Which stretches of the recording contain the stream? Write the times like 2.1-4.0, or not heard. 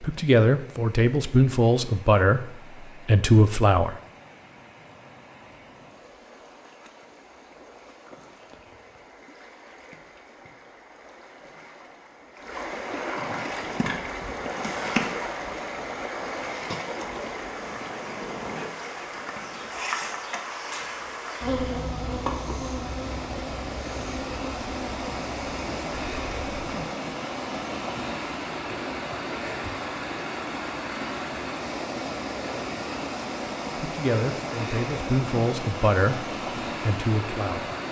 0.0-37.8.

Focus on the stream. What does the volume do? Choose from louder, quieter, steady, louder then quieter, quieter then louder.
louder.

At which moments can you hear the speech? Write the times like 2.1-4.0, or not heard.
0.0-4.0, 33.8-37.7.